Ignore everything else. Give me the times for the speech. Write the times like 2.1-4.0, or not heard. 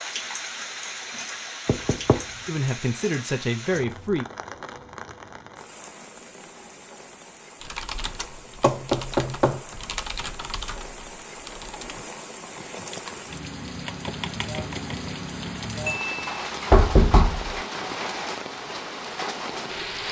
2.5-4.2.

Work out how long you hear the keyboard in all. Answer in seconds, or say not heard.
8 s.